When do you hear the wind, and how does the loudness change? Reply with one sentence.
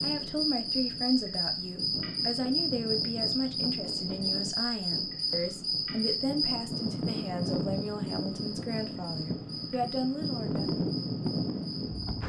You can hear the wind from 0.0 to 12.2 s, getting louder.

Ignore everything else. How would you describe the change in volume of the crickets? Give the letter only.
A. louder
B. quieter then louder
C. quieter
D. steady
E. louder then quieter
C.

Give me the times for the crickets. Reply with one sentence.
You can hear the crickets from 0.0 to 12.2 s.